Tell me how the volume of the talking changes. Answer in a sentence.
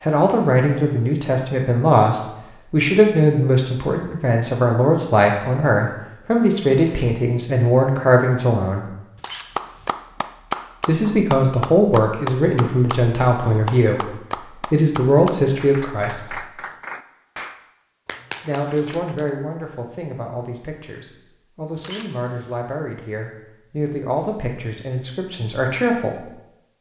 The volume of the talking goes down.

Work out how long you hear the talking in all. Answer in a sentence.
You can hear the talking for 22 seconds altogether.